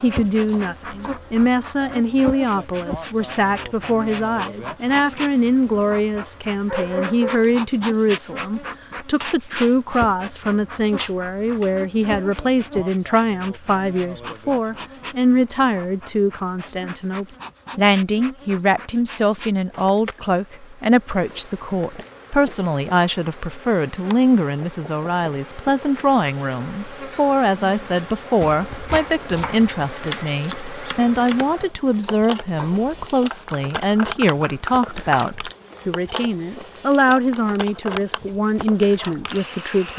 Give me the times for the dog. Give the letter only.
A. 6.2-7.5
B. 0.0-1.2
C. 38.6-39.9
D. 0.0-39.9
A.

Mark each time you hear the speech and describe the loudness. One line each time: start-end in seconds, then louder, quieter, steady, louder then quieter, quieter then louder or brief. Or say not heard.
0.0-39.9 steady.